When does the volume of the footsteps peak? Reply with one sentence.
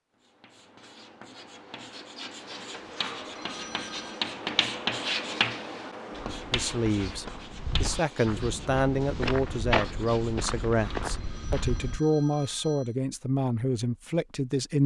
The volume of the footsteps peaks at 10 seconds.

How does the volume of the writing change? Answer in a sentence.
The loudness of the writing goes up, then down.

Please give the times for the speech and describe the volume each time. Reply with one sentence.
The speech can be heard from 6.5 to 14.8 s, at a steady volume.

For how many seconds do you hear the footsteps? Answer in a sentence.
The footsteps can be heard for 6 seconds in total.